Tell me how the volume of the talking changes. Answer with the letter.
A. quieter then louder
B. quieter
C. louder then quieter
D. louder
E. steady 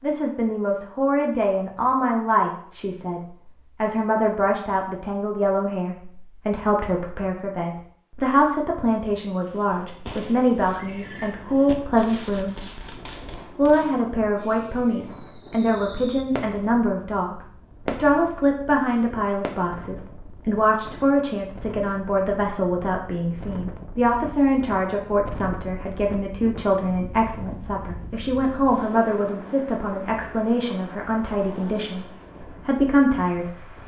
E.